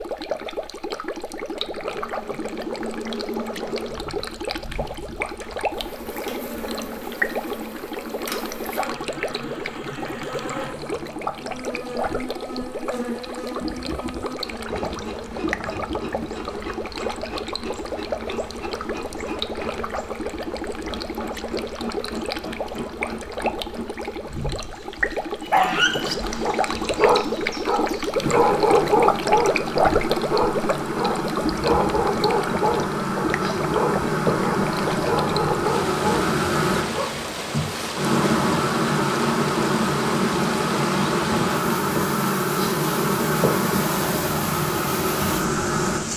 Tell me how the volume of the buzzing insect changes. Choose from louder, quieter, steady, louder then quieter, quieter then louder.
louder.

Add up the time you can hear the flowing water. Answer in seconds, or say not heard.
46 s.